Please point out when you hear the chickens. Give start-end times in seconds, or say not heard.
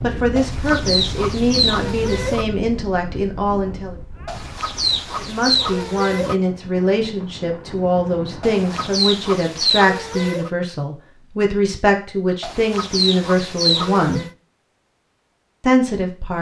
0.3-2.5, 4.2-6.3, 8.4-10.5, 12.4-14.3.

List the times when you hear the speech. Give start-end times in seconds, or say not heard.
0.0-4.0, 5.2-14.2, 15.6-16.3.